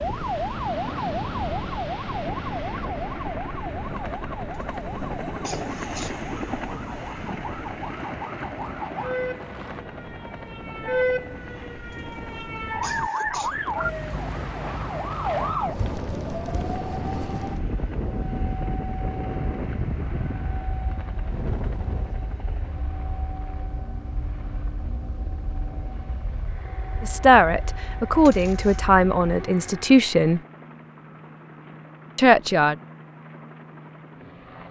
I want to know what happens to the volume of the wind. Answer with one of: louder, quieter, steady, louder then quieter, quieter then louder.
quieter then louder.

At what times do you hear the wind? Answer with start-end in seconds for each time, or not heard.
0.0-22.4.